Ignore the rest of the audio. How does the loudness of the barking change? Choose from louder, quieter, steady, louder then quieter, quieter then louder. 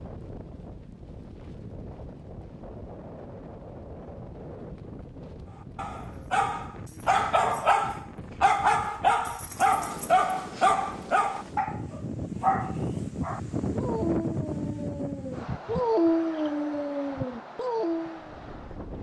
quieter then louder.